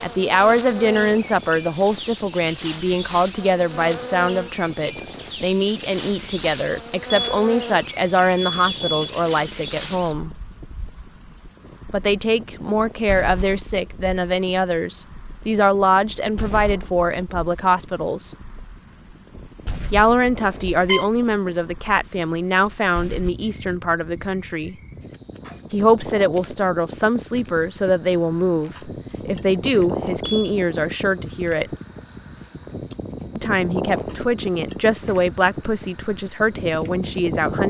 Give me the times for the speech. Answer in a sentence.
You can hear the speech from 0.0 to 10.3 s, from 11.9 to 18.4 s, from 19.9 to 24.8 s, from 25.7 to 31.7 s and from 33.4 to 37.6 s.